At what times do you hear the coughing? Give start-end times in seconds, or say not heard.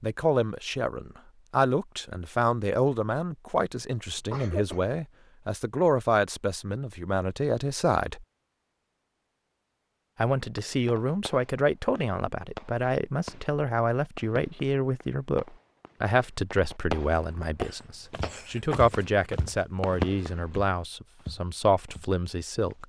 4.2-4.8, 17.6-18.8.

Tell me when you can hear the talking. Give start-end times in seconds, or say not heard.
0.0-8.2, 10.2-22.8.